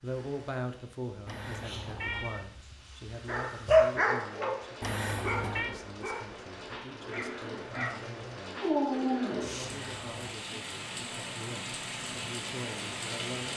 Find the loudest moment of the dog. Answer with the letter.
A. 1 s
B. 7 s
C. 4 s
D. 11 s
C.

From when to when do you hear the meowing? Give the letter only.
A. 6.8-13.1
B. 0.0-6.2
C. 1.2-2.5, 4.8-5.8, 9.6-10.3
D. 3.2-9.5
C.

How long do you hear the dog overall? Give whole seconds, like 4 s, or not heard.
6 s.